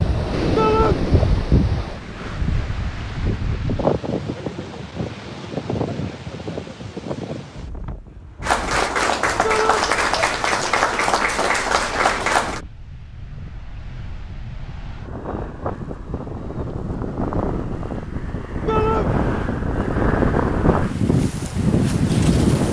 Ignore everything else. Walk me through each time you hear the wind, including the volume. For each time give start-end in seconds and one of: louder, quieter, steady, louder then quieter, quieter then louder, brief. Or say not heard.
0.0-22.6 quieter then louder.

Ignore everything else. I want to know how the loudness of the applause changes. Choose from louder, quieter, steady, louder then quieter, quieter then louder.
steady.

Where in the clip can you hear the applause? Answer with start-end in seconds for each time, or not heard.
8.4-12.6.